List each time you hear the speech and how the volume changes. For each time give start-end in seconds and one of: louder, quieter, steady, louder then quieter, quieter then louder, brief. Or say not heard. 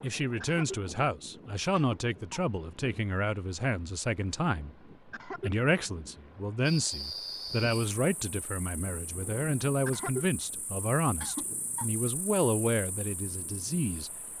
0.0-14.3 steady.